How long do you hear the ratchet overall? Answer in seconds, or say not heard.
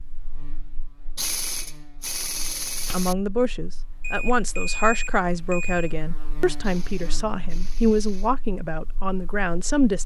4 s.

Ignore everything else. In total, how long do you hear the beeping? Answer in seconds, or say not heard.
2 s.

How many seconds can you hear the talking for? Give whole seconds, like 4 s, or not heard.
7 s.